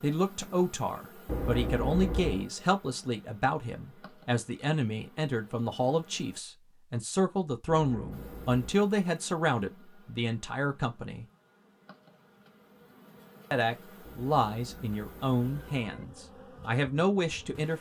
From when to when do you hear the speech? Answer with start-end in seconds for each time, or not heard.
0.0-11.2, 13.5-17.7.